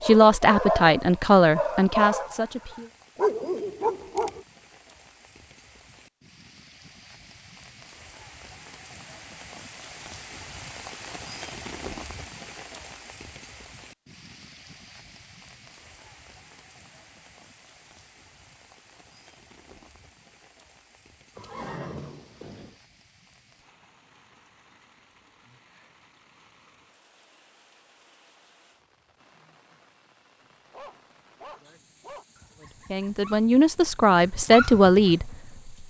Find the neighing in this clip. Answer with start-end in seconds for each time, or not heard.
21.4-22.8.